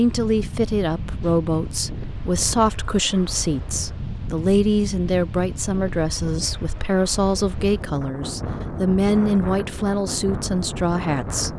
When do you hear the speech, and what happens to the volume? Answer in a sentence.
You can hear the speech from 0.0 to 11.5 s, at a steady volume.